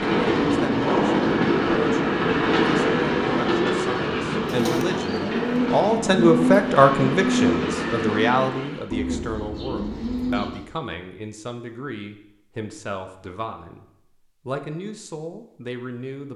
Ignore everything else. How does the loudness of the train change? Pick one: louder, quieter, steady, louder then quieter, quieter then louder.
quieter.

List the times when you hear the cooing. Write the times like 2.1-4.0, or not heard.
4.5-10.6.